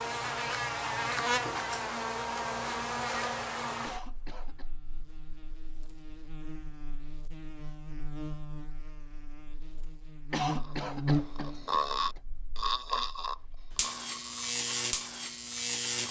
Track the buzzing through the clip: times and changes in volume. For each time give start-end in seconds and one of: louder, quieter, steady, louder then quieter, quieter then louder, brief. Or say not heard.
0.0-16.0 quieter then louder.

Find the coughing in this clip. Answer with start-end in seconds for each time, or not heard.
3.8-4.7, 10.3-12.2.